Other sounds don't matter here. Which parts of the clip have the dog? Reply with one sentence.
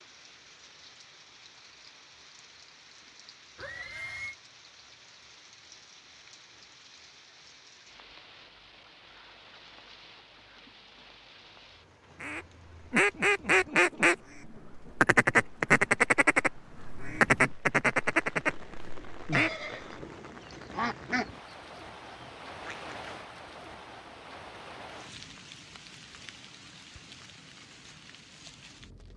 The dog can't be heard in this clip.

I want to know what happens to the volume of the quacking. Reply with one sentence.
The volume of the quacking goes down.